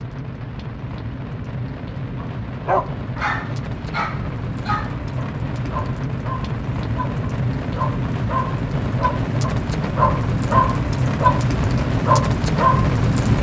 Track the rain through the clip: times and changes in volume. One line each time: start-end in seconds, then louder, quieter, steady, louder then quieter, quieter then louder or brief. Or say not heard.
0.0-13.3 louder.